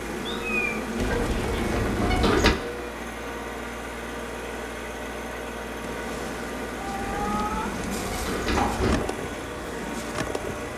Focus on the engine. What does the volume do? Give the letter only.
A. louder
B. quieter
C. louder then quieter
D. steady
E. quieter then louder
D.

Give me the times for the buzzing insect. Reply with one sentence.
You can hear the buzzing insect from 0.0 to 2.4 s and from 5.8 to 10.7 s.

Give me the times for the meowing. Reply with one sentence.
You can hear the meowing from 0.2 to 0.8 s and from 6.8 to 7.8 s.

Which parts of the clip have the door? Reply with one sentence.
You can hear the door from 0.9 to 2.5 s and from 7.0 to 9.0 s.